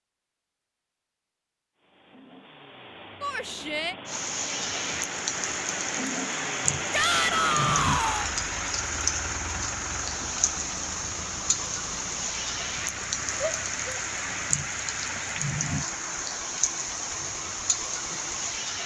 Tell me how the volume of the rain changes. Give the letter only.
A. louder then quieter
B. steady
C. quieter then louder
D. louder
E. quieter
B.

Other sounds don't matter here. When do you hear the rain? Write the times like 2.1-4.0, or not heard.
4.0-18.8.